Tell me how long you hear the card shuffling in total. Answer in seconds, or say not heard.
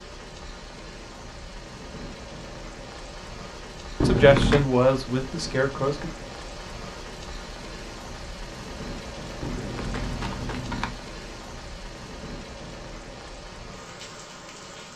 2 s.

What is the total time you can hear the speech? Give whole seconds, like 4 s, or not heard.
2 s.